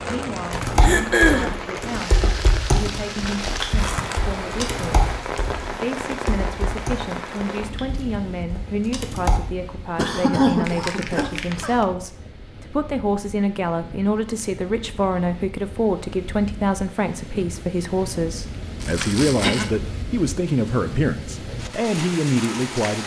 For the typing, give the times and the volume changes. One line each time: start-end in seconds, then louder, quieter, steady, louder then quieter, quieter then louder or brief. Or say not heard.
0.5-9.4 quieter.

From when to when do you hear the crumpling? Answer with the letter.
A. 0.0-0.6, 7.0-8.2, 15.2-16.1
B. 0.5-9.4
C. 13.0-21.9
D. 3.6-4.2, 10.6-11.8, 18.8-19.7
D.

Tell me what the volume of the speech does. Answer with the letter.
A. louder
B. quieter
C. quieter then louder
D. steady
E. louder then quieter
A.